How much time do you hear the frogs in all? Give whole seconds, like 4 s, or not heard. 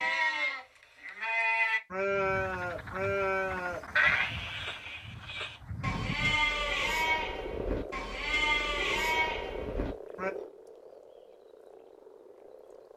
11 s.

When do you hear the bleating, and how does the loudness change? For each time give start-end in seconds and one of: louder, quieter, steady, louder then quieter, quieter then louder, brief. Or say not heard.
0.0-10.3 quieter then louder.